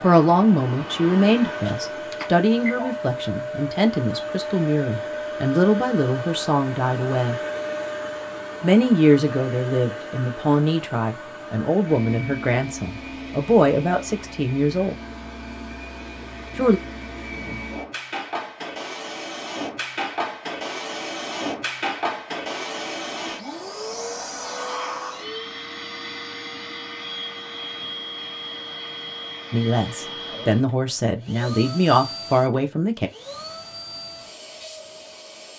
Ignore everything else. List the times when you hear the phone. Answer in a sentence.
You can hear the phone from 1.6 to 3.0 s.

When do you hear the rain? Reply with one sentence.
The rain can't be heard in this clip.